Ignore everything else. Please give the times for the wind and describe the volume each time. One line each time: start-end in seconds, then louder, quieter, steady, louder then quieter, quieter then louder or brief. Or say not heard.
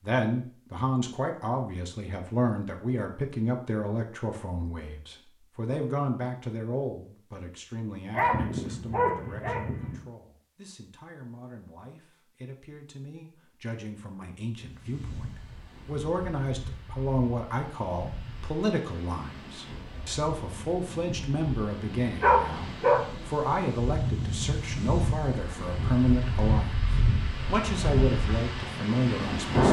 14.6-29.6 louder.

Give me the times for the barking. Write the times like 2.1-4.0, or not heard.
8.1-10.0, 22.2-23.1.